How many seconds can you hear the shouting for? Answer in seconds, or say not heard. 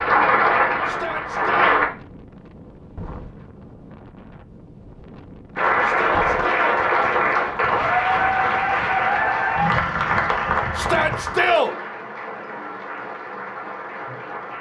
3 s.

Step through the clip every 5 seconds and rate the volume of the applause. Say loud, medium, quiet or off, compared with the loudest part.
loud, loud, medium.